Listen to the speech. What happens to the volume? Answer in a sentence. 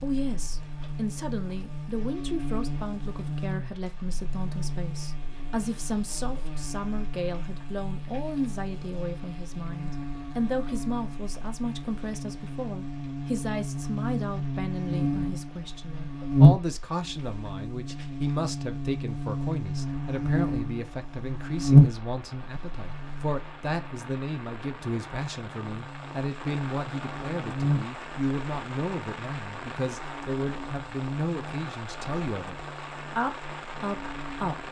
The volume of the speech stays about the same.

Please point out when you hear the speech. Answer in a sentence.
The speech can be heard from 0.0 to 34.6 s.